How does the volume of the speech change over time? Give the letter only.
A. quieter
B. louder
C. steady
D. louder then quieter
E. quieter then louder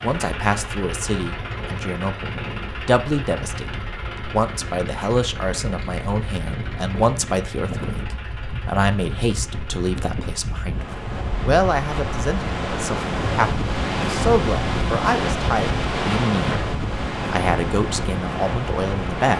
C.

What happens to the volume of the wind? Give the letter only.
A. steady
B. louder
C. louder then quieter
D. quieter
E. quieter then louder
B.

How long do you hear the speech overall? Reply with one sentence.
The speech can be heard for 19 seconds in total.